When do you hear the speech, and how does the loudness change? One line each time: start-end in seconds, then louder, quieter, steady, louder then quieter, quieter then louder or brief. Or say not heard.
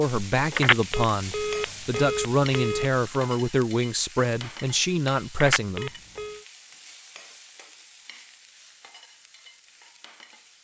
0.0-5.9 steady.